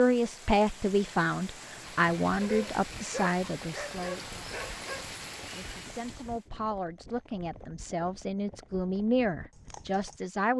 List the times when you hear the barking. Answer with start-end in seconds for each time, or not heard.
2.4-5.1.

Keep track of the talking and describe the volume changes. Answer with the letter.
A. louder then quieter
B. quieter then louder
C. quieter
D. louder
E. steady
B.